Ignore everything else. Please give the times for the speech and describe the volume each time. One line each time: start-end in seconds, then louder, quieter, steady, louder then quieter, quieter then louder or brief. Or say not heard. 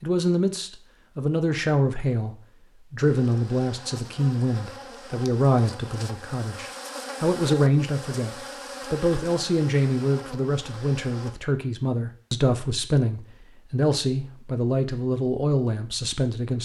0.0-16.5 steady.